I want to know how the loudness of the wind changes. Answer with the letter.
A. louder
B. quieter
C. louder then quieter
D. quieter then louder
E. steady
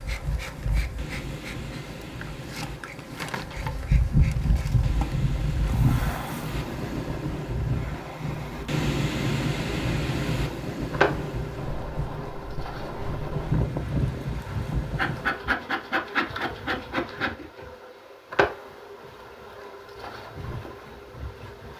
A.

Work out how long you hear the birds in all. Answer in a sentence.
You can't hear the birds here.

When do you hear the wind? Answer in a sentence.
The wind can be heard from 0.0 to 15.4 s.